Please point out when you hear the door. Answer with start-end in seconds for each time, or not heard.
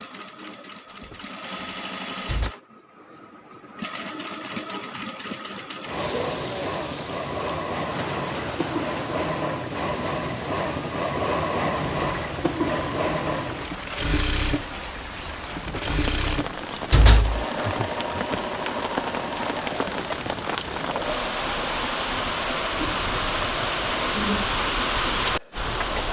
1.0-2.5, 15.7-17.4.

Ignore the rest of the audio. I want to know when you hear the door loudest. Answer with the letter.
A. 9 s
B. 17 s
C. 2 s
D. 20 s
B.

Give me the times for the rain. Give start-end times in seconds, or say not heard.
6.0-26.0.